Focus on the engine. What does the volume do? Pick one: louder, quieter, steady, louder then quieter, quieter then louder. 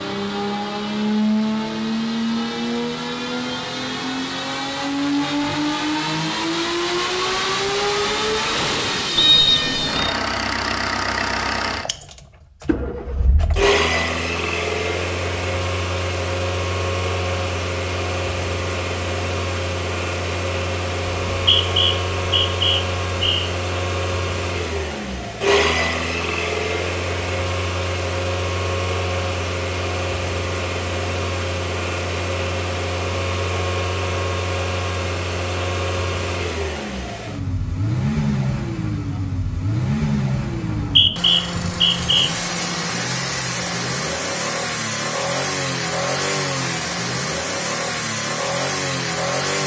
steady.